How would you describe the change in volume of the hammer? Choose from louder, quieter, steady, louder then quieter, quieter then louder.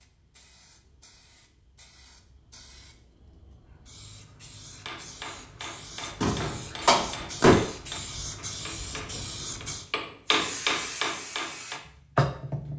louder.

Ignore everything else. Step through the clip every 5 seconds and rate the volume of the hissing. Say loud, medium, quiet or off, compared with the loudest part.
quiet, medium, loud.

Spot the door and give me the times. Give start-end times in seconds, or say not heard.
6.2-7.6.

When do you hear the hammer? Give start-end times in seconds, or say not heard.
4.7-11.8.